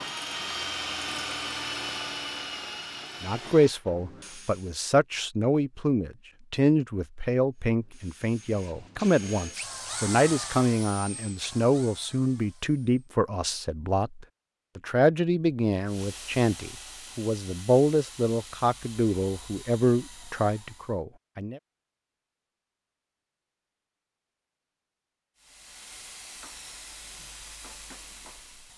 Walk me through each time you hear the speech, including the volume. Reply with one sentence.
The speech can be heard from 3.2 to 21.6 s, at a steady volume.